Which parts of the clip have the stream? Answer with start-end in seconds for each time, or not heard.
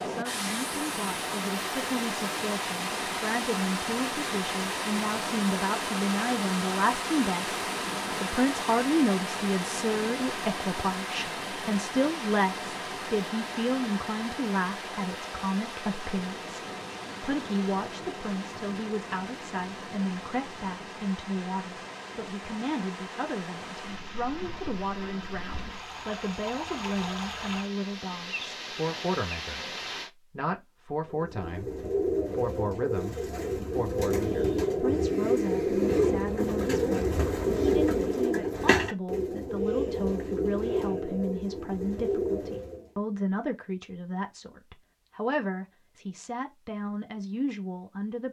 0.0-30.1.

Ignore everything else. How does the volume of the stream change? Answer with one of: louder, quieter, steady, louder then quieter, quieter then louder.
quieter.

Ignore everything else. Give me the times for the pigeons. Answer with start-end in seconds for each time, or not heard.
31.0-42.9.